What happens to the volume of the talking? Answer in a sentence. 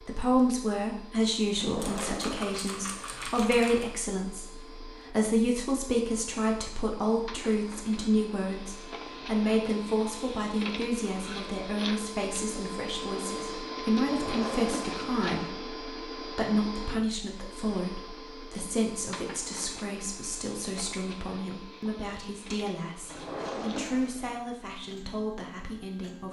The volume of the talking goes down.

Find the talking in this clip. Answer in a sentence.
The talking can be heard from 0.0 to 26.2 s.